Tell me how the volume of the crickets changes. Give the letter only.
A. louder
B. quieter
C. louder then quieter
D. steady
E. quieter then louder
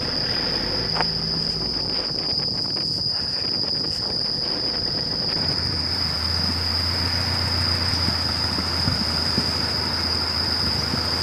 D.